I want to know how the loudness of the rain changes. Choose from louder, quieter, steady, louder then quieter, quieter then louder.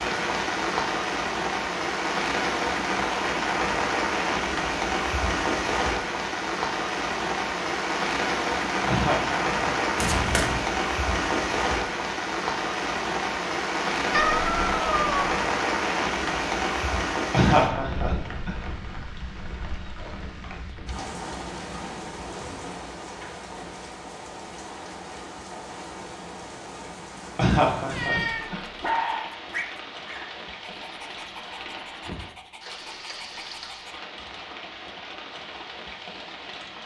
quieter.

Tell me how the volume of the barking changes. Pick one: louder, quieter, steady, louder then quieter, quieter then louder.
quieter.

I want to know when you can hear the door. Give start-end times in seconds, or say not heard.
not heard.